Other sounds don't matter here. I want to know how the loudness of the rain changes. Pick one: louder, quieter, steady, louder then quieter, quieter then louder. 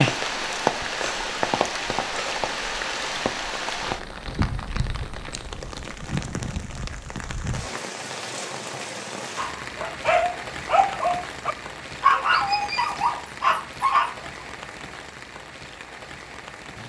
quieter.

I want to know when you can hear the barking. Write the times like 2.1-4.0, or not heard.
9.3-14.4.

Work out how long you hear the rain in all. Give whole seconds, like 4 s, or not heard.
17 s.